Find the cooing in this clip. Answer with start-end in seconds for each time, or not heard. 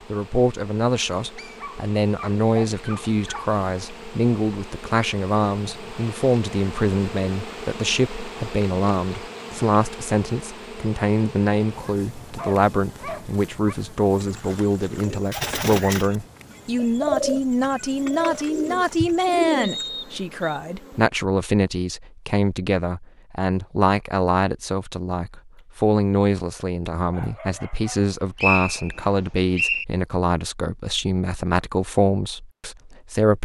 14.2-19.9.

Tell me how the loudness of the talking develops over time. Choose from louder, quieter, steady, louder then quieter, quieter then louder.
steady.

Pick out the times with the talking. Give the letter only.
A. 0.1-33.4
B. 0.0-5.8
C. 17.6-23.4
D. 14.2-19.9
A.